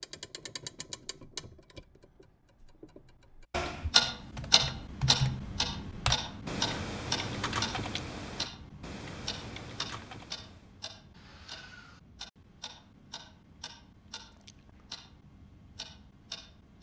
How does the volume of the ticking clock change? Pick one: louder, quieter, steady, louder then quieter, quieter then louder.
louder then quieter.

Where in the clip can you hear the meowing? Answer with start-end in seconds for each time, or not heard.
not heard.